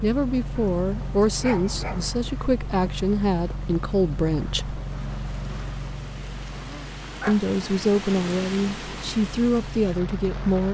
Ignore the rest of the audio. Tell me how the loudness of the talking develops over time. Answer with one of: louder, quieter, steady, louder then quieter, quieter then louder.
steady.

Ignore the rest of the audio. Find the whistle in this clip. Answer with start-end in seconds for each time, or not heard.
not heard.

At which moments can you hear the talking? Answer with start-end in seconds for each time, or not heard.
0.0-4.8, 7.2-10.6.